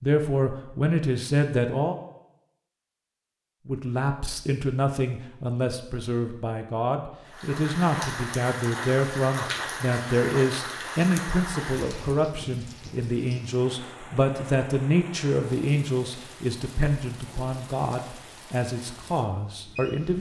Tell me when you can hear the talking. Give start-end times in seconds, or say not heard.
0.0-1.9, 3.6-20.1.